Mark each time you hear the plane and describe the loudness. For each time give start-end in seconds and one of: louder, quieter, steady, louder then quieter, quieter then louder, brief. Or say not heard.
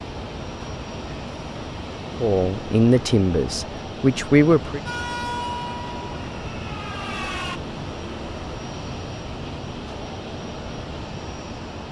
0.0-11.8 steady.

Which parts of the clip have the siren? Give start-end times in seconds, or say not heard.
4.8-7.6.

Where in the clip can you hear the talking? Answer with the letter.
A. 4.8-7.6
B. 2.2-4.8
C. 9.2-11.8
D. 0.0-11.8
B.